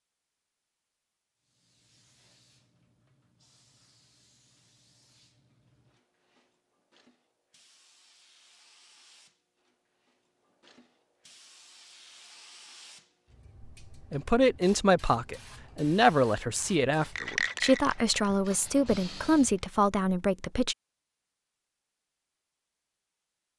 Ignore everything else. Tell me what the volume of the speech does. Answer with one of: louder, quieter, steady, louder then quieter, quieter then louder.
steady.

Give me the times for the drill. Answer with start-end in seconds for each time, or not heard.
not heard.